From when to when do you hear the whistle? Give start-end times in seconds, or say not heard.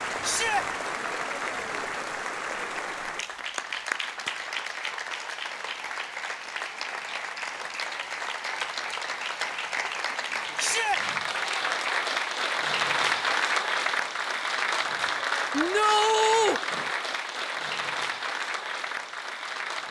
not heard.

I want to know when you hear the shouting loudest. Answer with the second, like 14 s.
16 s.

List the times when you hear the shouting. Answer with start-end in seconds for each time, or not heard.
0.2-0.7, 10.6-11.0, 15.5-16.6.